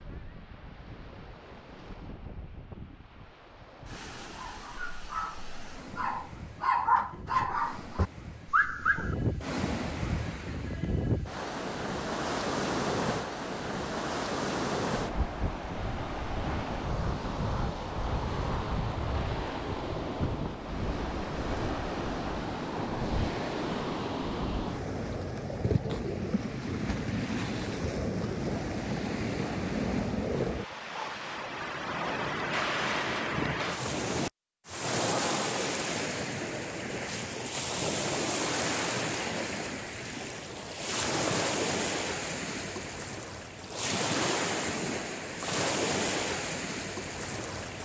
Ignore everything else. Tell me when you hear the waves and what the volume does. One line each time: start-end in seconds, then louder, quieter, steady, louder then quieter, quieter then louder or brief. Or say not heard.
0.0-47.8 louder.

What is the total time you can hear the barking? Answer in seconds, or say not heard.
5 s.